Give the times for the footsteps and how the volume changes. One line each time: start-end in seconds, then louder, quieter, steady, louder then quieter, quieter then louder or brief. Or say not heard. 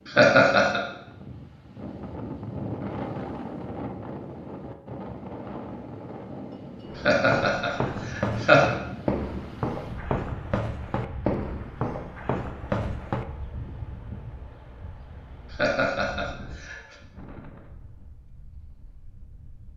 6.8-13.2 steady.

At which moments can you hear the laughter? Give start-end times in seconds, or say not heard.
0.1-0.8, 7.0-8.8, 15.5-16.9.